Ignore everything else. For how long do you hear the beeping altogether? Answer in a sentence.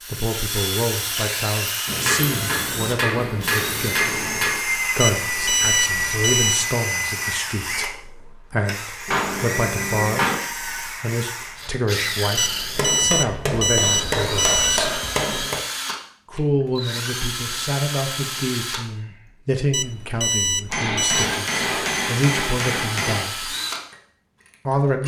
The beeping can be heard for 6 seconds in total.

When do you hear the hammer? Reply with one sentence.
You can hear the hammer from 1.9 to 4.6 s, from 9.1 to 10.3 s, from 12.8 to 15.6 s and from 20.7 to 23.3 s.